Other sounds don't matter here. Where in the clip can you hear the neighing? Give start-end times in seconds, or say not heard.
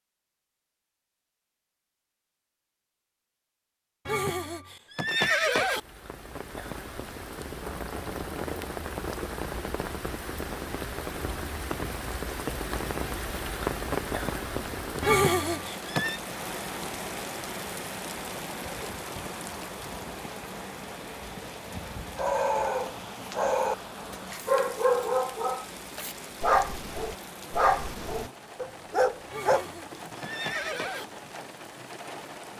4.0-5.8, 15.0-16.2, 29.2-31.1.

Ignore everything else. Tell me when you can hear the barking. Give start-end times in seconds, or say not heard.
22.1-29.6.